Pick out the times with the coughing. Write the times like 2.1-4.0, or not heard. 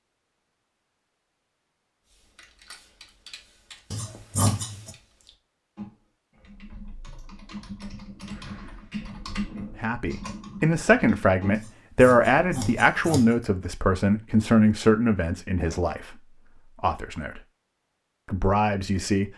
not heard.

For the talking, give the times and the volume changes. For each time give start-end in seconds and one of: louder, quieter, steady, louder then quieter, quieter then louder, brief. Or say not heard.
9.8-17.4 quieter
18.2-19.3 brief.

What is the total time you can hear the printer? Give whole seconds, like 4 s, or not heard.
not heard.